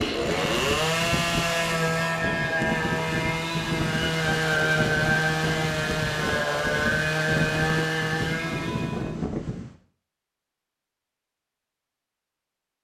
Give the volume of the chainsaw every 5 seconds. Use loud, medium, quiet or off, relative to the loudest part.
loud, loud, off.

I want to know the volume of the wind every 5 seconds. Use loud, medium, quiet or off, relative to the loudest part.
loud, loud, off.